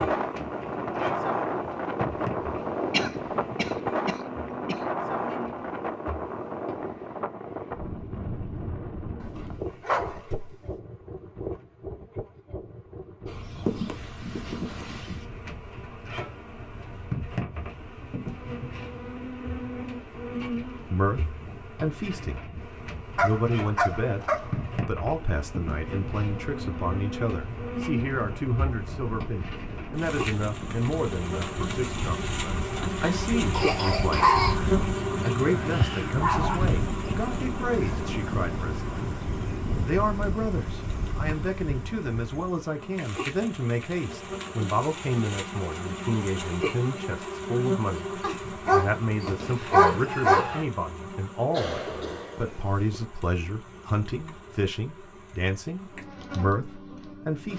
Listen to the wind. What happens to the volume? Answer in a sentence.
The volume of the wind goes down, then up.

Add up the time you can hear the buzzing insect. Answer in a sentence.
You can hear the buzzing insect for 51 seconds altogether.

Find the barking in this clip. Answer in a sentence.
You can hear the barking from 9.2 to 10.6 s, from 23.1 to 24.6 s, from 34.1 to 36.6 s and from 48.2 to 50.6 s.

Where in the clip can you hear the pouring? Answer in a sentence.
The pouring can't be heard in this clip.